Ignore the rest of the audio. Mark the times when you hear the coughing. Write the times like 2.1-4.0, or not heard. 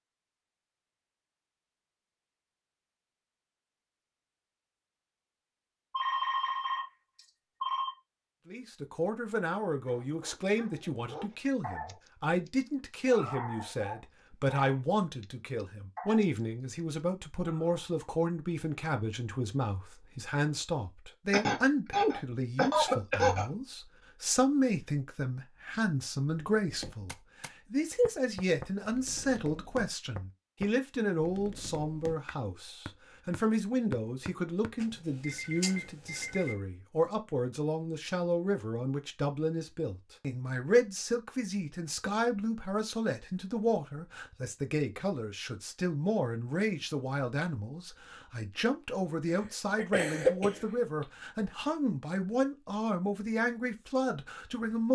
21.3-23.5, 49.3-50.6.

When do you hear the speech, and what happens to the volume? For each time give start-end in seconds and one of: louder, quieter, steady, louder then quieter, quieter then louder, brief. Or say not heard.
8.4-54.9 steady.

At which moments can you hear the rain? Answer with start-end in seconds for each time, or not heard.
not heard.